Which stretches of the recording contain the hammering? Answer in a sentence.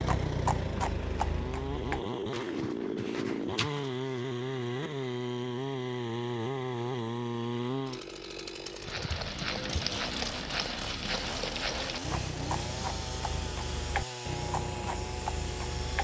You can't hear the hammering here.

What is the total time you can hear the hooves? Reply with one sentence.
You can hear the hooves for 11 seconds altogether.